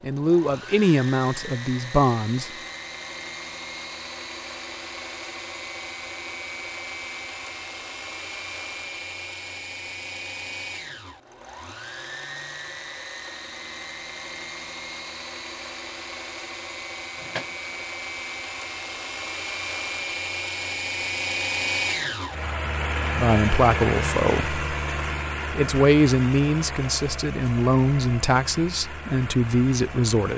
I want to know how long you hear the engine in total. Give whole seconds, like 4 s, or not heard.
30 s.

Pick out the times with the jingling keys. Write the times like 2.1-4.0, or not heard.
17.1-17.9.